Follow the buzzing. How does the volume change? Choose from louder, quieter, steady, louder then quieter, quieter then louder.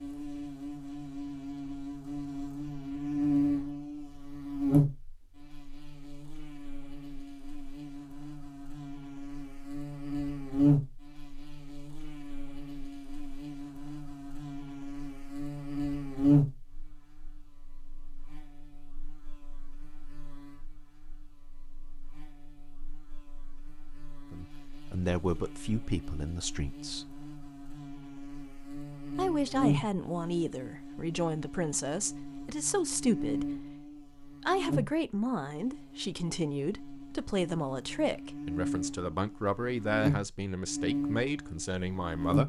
quieter then louder.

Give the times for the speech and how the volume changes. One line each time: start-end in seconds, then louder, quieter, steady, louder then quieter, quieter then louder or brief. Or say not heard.
24.3-27.1 brief
29.1-42.4 steady.